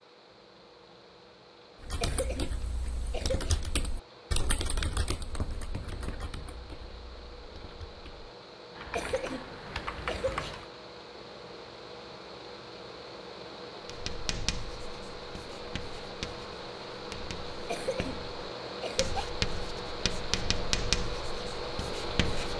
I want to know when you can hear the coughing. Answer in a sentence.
The coughing can be heard from 2.0 to 3.6 s, from 8.9 to 10.6 s and from 17.6 to 19.2 s.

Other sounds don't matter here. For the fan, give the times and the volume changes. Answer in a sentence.
The fan can be heard from 0.0 to 22.5 s, getting louder.